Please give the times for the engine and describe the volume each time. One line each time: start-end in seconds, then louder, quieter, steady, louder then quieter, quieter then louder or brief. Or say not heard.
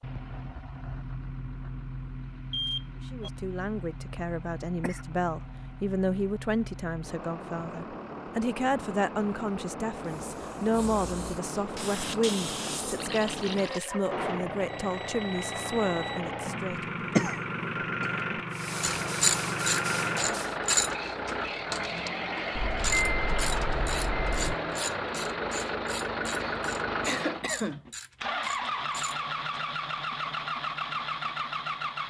0.0-32.0 louder.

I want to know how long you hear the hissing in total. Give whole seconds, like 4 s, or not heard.
6 s.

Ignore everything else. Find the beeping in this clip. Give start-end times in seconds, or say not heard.
2.5-3.3, 14.7-16.2, 22.6-24.6.